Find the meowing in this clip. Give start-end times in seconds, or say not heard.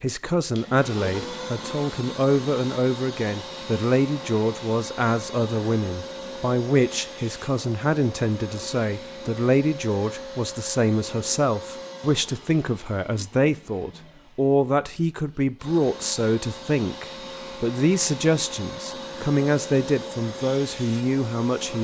not heard.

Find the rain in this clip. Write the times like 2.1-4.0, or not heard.
not heard.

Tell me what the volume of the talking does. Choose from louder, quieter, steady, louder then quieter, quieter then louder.
steady.